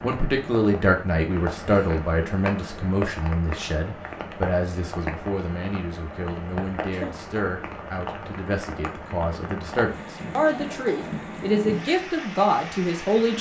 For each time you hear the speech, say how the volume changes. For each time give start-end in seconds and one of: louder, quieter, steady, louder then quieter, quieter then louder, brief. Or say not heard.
0.0-13.3 quieter then louder.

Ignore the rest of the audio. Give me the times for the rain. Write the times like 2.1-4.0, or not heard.
0.0-13.3.